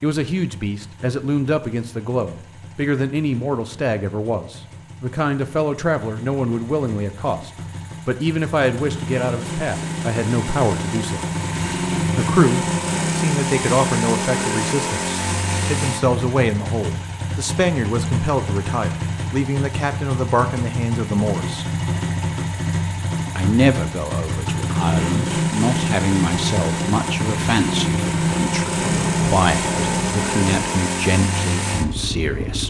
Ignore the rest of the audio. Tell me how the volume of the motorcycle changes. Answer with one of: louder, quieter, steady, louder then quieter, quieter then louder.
louder.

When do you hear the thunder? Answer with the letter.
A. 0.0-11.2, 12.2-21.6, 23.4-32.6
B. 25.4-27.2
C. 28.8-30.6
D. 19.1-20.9
C.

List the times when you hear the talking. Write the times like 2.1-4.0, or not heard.
0.0-11.2, 12.2-21.6, 23.4-32.6.